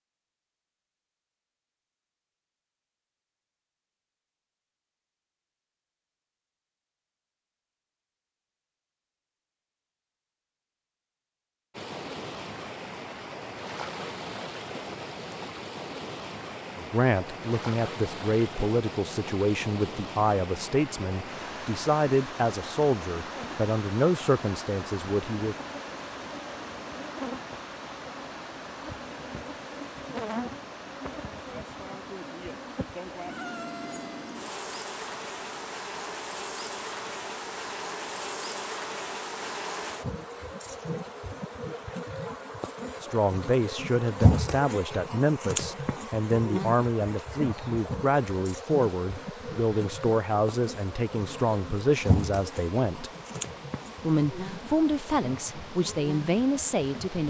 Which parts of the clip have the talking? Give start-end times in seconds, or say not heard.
16.8-25.6, 43.0-53.1, 54.0-57.2.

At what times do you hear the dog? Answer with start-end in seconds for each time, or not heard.
not heard.